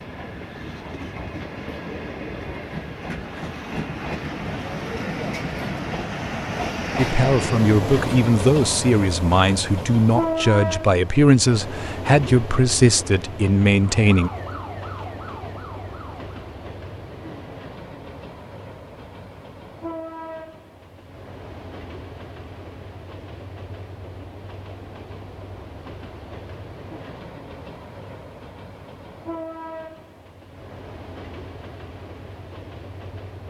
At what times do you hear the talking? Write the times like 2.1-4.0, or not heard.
7.0-14.3.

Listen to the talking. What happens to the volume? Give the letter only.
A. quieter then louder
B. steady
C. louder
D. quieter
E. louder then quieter
B.